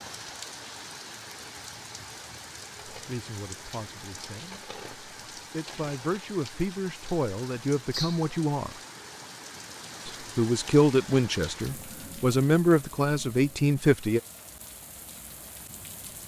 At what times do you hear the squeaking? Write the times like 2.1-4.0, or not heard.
7.9-8.3.